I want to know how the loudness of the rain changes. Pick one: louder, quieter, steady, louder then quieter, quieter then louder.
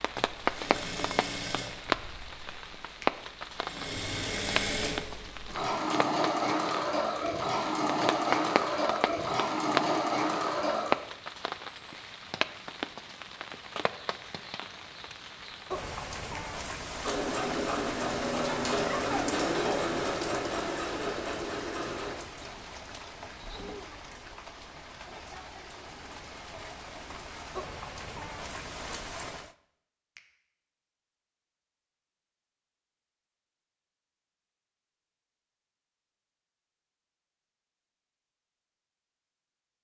quieter.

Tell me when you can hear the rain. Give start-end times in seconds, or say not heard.
0.0-29.5.